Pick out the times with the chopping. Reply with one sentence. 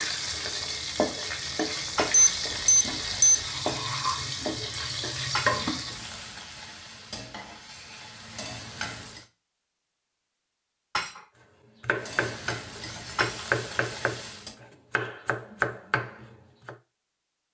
You can hear the chopping from 11.8 to 16.8 s.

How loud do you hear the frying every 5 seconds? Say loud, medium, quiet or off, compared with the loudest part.
loud, loud, medium, off.